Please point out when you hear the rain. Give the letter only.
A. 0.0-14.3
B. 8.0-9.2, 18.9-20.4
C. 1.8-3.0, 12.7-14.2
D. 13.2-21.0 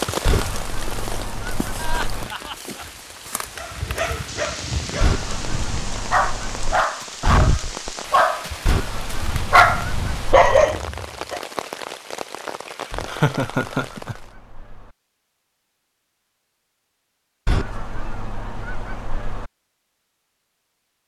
A.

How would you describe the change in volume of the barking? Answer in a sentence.
The loudness of the barking goes up.